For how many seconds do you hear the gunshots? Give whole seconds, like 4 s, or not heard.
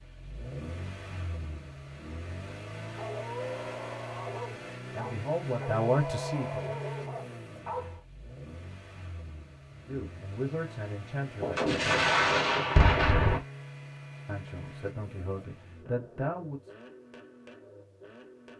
2 s.